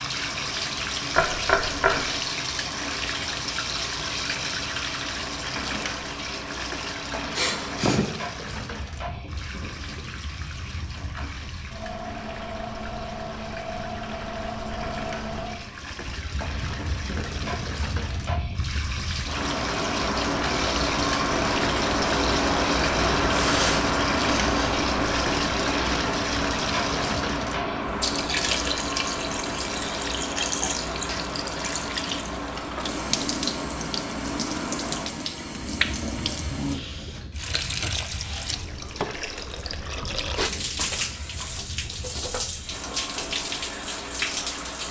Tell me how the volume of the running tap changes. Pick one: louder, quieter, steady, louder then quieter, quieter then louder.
quieter then louder.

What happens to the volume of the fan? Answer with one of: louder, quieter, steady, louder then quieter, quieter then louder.
louder then quieter.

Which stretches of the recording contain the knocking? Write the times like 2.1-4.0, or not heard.
1.1-2.0.